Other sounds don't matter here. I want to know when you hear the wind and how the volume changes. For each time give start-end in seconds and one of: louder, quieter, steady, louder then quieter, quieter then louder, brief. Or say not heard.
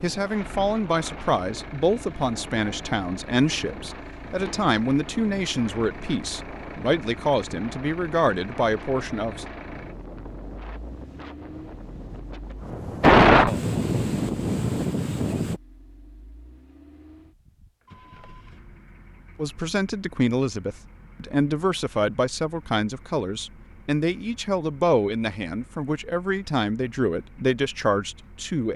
0.0-15.6 louder.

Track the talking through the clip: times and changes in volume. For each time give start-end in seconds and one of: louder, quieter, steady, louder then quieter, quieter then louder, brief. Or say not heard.
0.0-9.4 steady
19.4-28.7 steady.